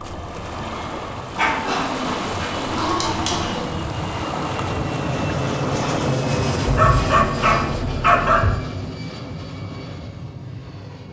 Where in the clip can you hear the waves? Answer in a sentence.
The waves can be heard from 0.0 to 6.2 s.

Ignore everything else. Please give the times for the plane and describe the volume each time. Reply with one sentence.
You can hear the plane from 0.0 to 11.0 s, getting louder then quieter.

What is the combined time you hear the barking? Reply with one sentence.
You can hear the barking for 4 seconds altogether.